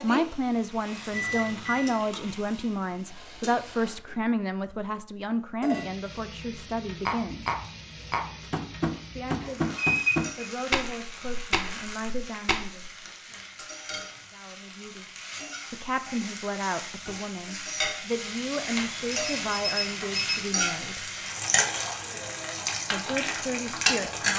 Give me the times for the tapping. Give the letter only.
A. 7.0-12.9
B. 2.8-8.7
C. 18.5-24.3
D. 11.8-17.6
A.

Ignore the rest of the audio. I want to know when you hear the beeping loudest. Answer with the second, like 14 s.
10 s.